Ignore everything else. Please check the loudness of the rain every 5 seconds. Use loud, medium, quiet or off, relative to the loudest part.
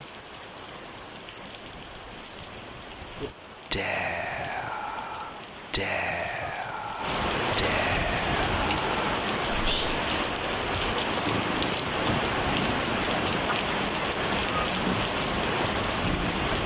quiet, loud, loud, loud.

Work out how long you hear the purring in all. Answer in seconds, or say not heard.
5 s.